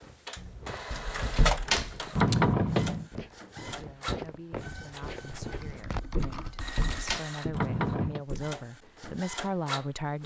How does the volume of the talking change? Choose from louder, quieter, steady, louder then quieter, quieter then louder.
louder.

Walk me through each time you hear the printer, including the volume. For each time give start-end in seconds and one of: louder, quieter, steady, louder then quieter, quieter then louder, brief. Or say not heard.
0.0-10.2 quieter then louder.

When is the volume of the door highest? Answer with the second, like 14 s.
2 s.